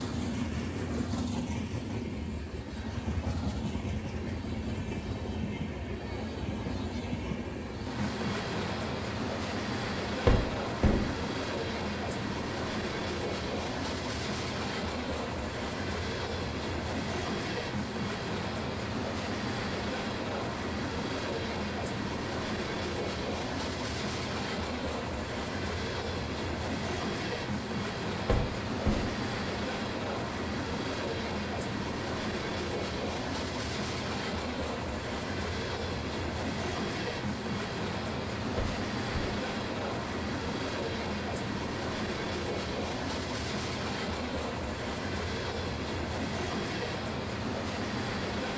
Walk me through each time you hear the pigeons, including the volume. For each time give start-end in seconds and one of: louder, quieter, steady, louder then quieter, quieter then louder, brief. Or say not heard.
not heard.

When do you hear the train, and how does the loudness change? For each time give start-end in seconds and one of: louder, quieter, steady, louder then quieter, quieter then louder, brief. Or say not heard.
0.0-48.5 steady.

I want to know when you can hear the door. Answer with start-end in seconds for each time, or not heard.
10.2-11.1, 28.2-29.1, 38.5-39.4.